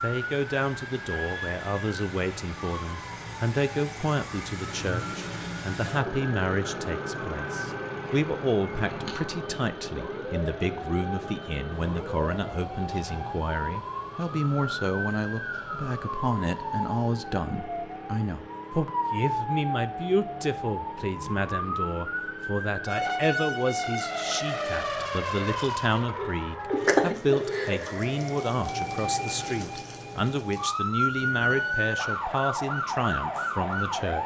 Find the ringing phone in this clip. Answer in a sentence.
The ringing phone can be heard from 26.1 to 27.8 s.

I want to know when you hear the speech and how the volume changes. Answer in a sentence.
The speech can be heard from 0.0 to 34.2 s, at a steady volume.